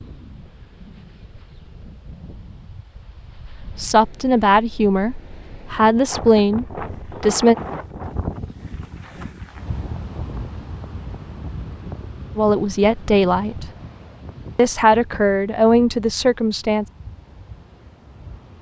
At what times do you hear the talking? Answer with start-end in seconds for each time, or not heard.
3.8-7.5, 12.3-13.7, 14.6-16.9.